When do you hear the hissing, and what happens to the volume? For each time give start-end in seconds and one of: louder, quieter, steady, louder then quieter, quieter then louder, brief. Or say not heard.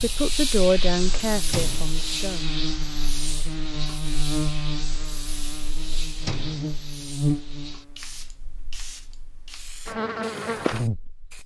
0.0-11.4 quieter.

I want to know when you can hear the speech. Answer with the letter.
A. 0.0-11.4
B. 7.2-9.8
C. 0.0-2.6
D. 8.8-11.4
C.